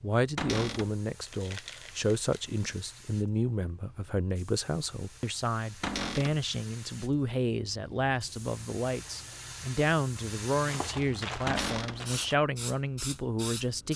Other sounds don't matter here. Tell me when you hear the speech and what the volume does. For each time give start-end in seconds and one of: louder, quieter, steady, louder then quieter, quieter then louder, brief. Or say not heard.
0.0-13.9 steady.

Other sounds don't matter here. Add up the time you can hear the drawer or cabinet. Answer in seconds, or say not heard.
2 s.